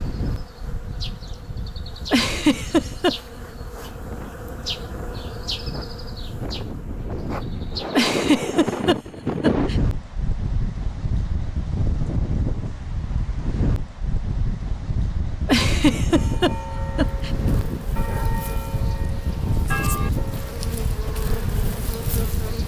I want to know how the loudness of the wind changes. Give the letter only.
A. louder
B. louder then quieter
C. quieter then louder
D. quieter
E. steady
A.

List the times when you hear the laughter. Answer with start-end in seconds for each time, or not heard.
2.1-3.1, 7.9-9.8, 15.4-17.3.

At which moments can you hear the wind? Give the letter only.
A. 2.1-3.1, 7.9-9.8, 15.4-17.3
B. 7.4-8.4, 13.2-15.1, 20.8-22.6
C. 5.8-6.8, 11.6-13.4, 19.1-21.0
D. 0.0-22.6
D.